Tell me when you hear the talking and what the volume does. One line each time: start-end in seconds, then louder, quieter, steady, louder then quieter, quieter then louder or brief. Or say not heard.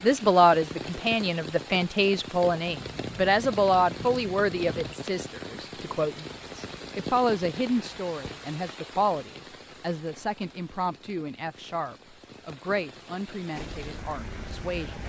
0.0-15.0 quieter.